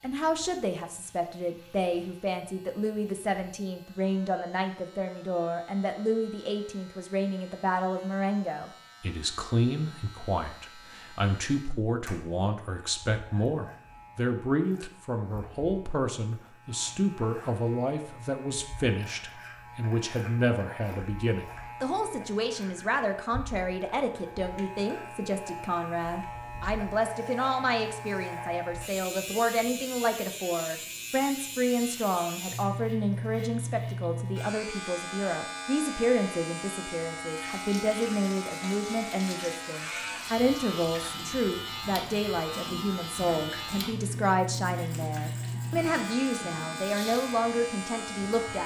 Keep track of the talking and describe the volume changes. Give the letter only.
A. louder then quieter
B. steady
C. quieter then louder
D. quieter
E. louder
B.